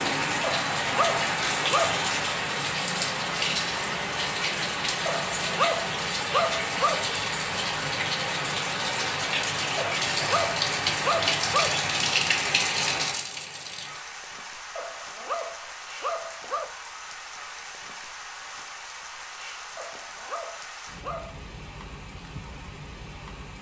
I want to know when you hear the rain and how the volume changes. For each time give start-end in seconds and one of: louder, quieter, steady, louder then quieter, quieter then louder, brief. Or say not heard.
0.0-23.5 quieter.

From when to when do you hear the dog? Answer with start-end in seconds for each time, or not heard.
0.4-1.9, 5.0-7.0, 9.8-11.9, 14.8-16.7, 19.8-21.4.